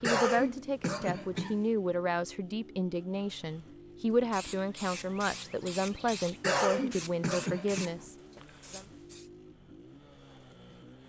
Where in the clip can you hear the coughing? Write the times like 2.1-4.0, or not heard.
0.0-1.6, 6.4-7.9.